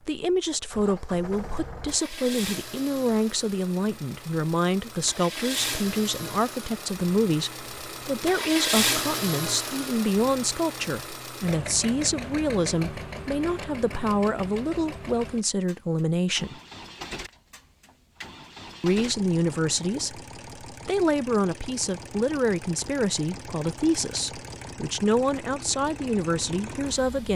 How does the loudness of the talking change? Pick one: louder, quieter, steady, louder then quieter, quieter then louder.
steady.